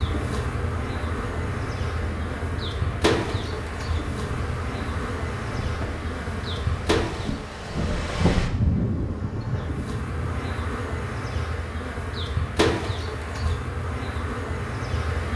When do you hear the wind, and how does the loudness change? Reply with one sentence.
You can hear the wind from 0.2 to 10.6 s, getting louder.